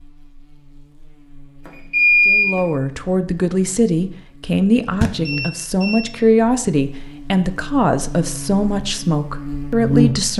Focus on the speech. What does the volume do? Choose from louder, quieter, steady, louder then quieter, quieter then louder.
steady.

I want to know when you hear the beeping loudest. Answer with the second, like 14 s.
2 s.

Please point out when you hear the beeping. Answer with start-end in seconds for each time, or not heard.
1.6-2.5, 5.2-6.2.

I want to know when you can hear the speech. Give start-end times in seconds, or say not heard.
2.2-10.3.